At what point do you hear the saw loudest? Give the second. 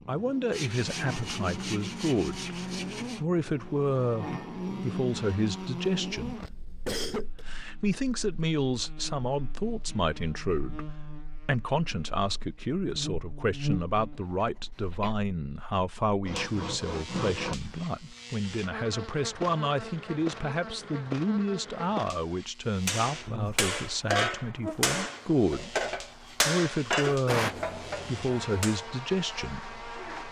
17 s.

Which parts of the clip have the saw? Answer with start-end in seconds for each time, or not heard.
0.5-3.2, 16.2-17.6.